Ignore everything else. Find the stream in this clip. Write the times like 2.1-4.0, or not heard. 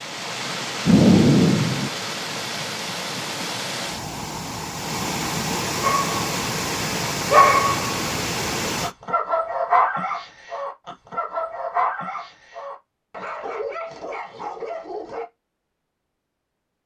0.0-8.9.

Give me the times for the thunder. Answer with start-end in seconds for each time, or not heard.
0.8-1.9.